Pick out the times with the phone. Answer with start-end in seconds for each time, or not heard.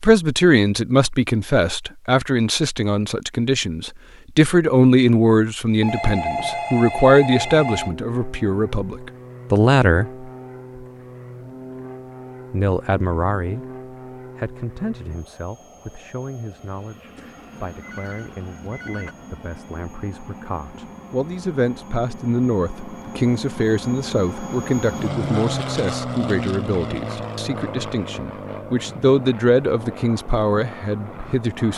5.8-8.0, 17.1-19.1.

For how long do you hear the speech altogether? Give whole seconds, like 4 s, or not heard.
29 s.